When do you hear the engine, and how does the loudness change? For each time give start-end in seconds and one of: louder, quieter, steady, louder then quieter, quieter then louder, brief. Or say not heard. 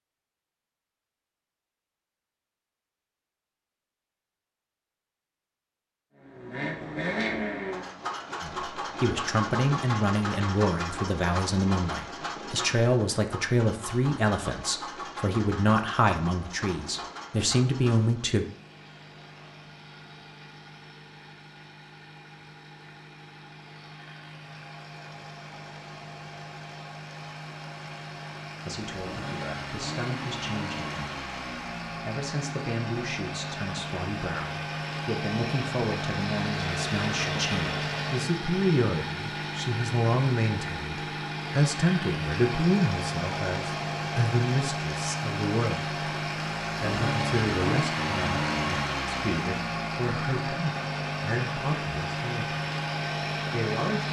6.2-54.0 quieter then louder.